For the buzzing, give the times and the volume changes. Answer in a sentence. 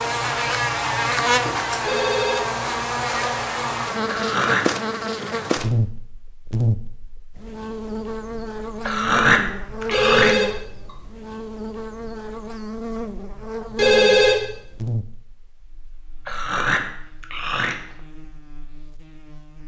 You can hear the buzzing from 0.0 to 19.6 s, getting quieter.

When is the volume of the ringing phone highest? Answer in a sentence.
The loudest moment of the ringing phone is at 14 seconds.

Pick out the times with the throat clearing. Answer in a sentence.
The throat clearing can be heard from 4.1 to 4.7 s, from 8.8 to 10.3 s and from 16.2 to 17.8 s.